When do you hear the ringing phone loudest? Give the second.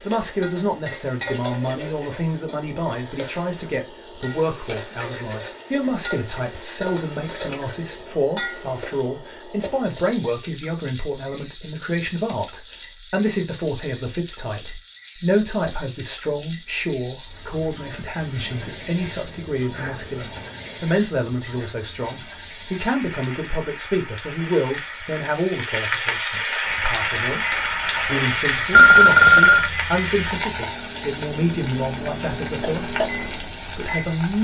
29 s.